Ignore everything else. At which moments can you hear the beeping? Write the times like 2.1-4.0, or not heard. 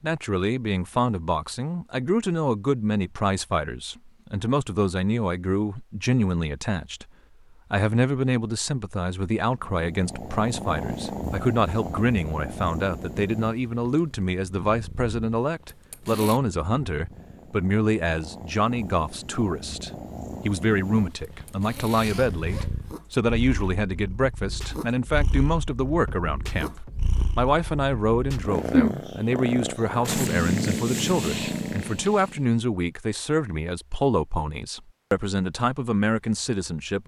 not heard.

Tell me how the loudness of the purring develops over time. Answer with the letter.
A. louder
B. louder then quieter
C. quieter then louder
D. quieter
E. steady
C.